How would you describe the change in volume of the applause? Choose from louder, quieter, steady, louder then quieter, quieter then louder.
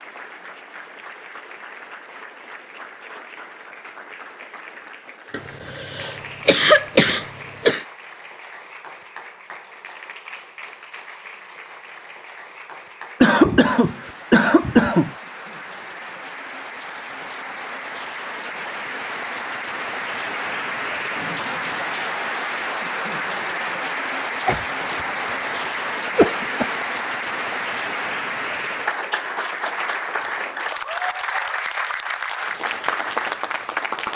louder.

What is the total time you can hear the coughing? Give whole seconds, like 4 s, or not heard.
6 s.